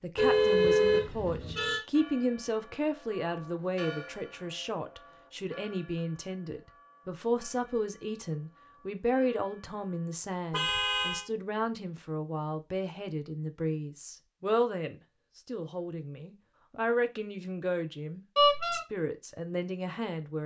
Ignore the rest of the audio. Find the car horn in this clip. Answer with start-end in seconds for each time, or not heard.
0.1-1.8, 10.5-11.2, 18.4-18.8.